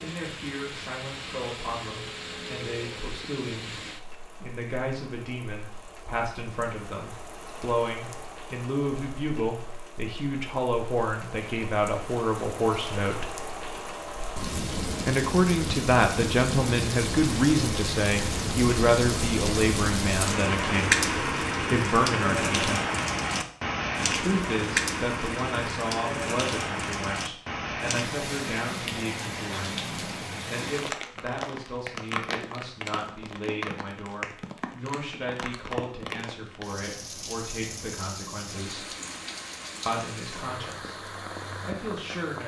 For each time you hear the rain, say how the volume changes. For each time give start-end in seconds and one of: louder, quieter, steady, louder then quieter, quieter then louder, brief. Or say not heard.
0.0-42.4 louder then quieter.